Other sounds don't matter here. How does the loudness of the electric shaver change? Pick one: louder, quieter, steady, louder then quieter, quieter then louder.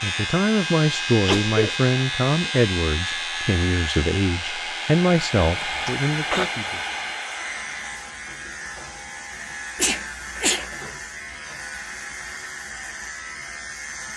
quieter.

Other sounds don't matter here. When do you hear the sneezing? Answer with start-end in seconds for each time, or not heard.
1.2-1.8, 5.4-6.5, 9.8-10.7.